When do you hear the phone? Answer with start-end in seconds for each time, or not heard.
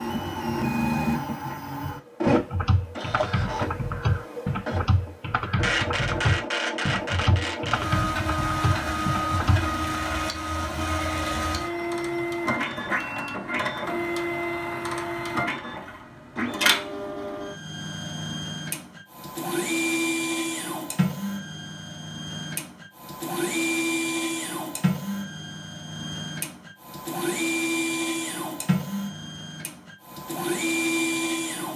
not heard.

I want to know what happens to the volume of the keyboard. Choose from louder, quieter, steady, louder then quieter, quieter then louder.
steady.